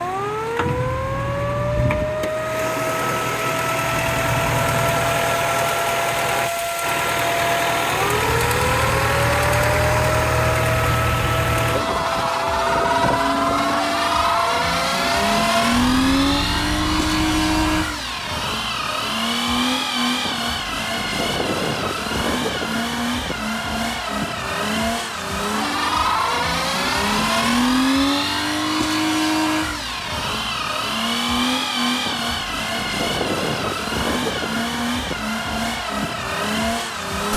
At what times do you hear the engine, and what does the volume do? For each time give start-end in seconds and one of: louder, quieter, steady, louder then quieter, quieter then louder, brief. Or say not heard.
0.0-37.3 steady.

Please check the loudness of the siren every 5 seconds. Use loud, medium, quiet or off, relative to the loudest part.
loud, loud, loud, loud, off, off, off, off.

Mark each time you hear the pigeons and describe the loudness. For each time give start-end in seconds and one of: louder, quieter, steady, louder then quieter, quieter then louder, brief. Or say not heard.
not heard.